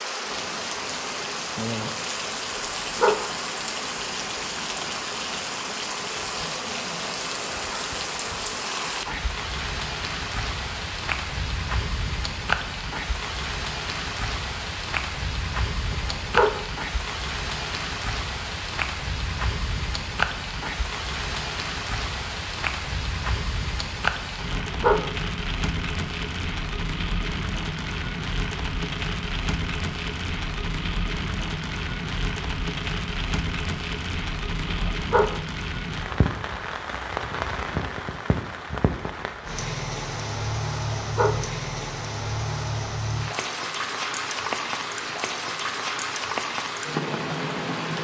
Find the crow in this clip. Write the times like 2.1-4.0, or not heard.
not heard.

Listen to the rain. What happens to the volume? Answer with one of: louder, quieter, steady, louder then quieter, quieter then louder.
steady.